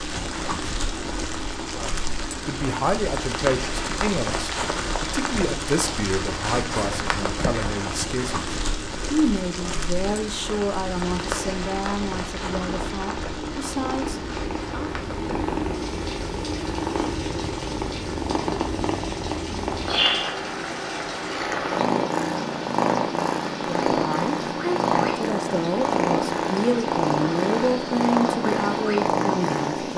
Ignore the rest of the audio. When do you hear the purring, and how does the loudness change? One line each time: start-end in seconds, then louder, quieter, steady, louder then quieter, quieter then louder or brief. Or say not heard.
0.0-29.9 louder.